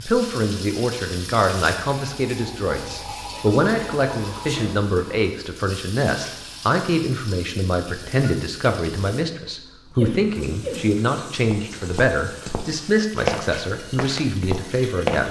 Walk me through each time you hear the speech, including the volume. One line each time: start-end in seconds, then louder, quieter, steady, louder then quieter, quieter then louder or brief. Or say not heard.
0.0-15.2 steady.